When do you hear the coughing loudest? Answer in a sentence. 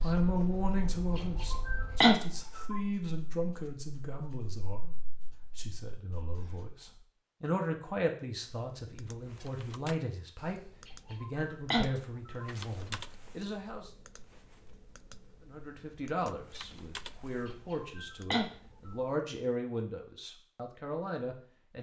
The volume of the coughing peaks at 2 seconds.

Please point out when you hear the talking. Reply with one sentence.
The talking can be heard from 0.0 to 13.9 s and from 15.4 to 21.7 s.